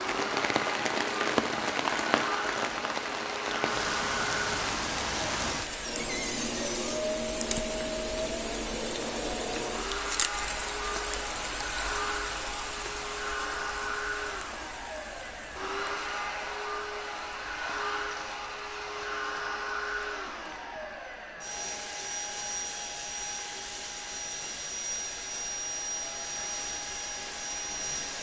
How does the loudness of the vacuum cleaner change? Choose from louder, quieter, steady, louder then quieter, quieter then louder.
steady.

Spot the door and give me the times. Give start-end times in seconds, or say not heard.
6.0-7.0.